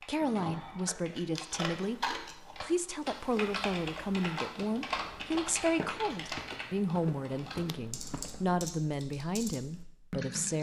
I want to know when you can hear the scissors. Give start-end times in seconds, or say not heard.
0.5-2.5, 5.6-6.4.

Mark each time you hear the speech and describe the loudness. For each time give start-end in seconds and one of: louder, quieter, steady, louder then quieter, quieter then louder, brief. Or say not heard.
0.1-10.5 steady.